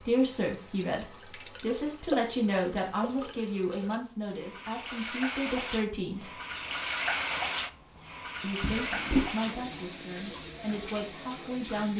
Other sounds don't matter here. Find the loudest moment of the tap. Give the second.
7 s.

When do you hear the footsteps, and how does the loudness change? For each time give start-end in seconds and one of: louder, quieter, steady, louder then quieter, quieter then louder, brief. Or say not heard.
not heard.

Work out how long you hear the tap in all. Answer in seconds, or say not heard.
12 s.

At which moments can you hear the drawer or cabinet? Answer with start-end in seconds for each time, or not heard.
8.6-9.3.